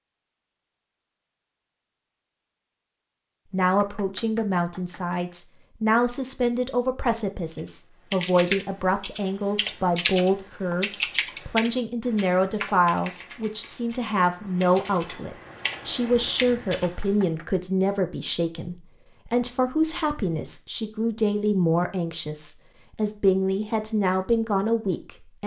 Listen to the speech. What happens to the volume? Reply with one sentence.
The loudness of the speech stays about the same.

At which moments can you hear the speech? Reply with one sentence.
The speech can be heard from 3.5 to 25.4 s.